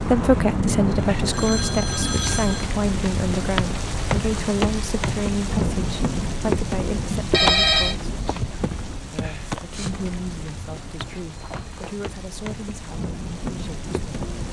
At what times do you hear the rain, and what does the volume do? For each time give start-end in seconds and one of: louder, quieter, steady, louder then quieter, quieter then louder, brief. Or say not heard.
0.0-14.4 quieter.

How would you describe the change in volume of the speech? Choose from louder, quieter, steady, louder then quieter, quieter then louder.
quieter.